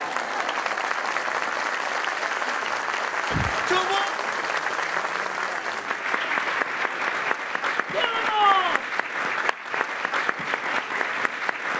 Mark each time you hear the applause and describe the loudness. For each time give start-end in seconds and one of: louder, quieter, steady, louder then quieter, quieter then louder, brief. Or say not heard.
0.0-11.7 steady.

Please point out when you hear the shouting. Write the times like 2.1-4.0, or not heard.
3.3-4.2, 7.9-8.8.